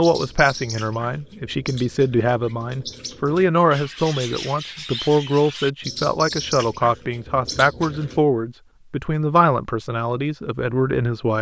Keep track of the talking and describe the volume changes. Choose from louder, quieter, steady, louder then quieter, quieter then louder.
steady.